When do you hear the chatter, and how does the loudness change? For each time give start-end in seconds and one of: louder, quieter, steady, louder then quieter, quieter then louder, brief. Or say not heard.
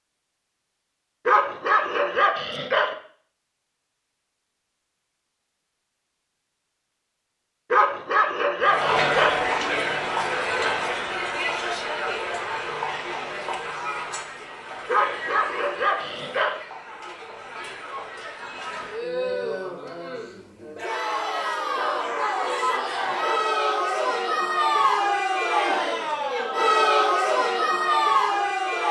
8.6-28.8 quieter then louder.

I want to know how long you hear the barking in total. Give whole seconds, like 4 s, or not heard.
7 s.